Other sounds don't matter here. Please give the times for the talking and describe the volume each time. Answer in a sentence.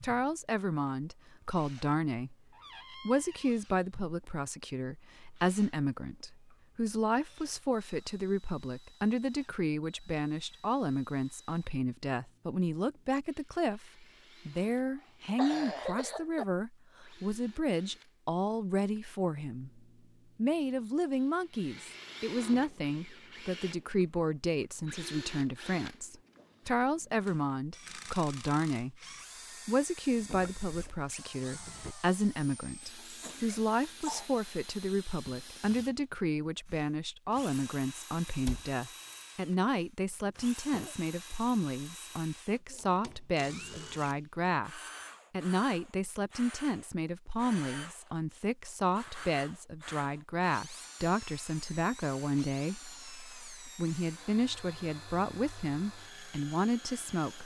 You can hear the talking briefly from 0.0 to 2.4 s; from 3.0 to 28.9 s, at a steady volume; and from 29.6 to 57.4 s, at a steady volume.